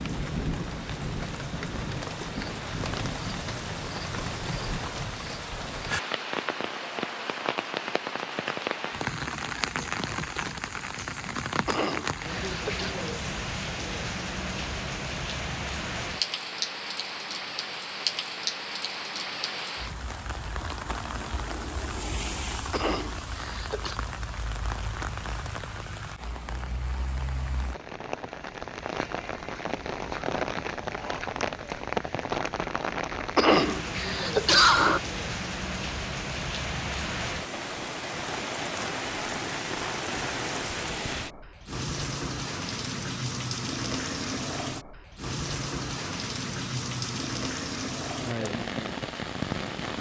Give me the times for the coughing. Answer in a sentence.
You can hear the coughing from 11.7 to 12.9 s, from 22.7 to 24.0 s and from 33.4 to 35.0 s.